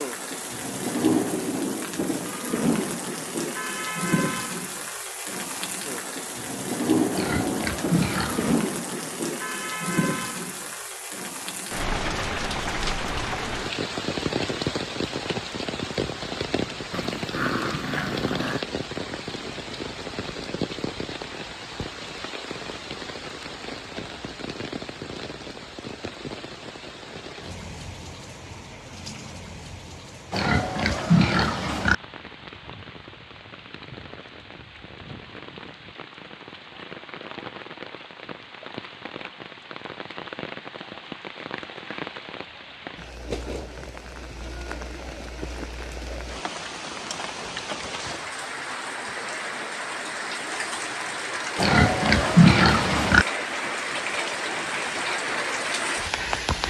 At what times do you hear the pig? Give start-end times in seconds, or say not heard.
7.1-8.7, 30.3-31.9, 51.5-53.2.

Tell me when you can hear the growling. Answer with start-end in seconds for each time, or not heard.
16.9-18.6.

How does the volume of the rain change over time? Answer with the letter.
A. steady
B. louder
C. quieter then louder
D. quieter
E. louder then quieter
C.